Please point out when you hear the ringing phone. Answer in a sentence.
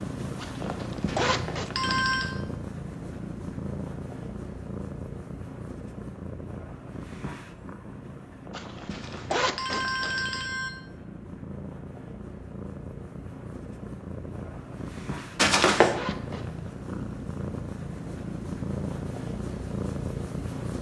You can hear the ringing phone from 1.1 to 2.4 s, from 8.9 to 10.7 s and from 15.3 to 15.9 s.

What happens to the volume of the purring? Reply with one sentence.
The loudness of the purring goes down, then up.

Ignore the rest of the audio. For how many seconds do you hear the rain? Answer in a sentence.
You can't hear the rain here.